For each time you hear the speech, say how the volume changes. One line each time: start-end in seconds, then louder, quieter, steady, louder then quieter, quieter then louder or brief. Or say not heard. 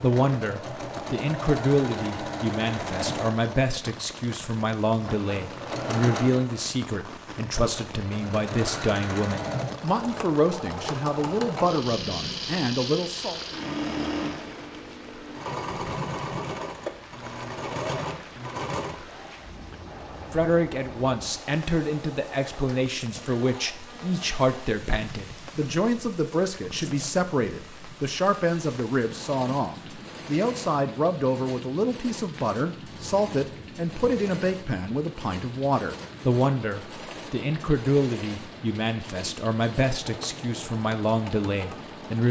0.0-13.4 steady
20.3-42.2 steady.